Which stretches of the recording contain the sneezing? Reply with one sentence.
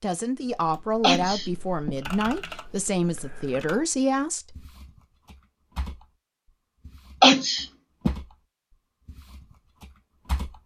You can hear the sneezing from 1.0 to 1.9 s and from 7.2 to 8.1 s.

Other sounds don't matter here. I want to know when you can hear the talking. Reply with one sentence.
You can hear the talking from 0.0 to 4.7 s.